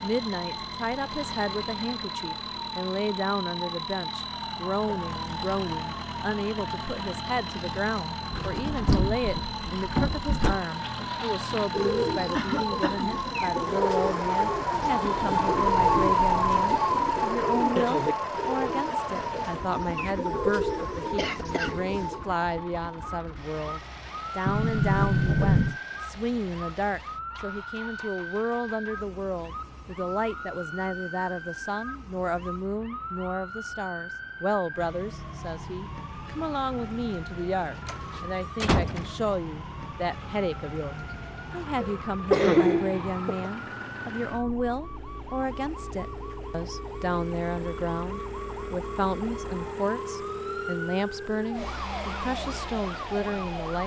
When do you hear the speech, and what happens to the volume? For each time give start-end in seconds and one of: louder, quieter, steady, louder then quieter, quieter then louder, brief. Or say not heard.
0.0-53.8 steady.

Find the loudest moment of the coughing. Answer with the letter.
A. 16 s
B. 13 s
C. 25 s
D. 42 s
D.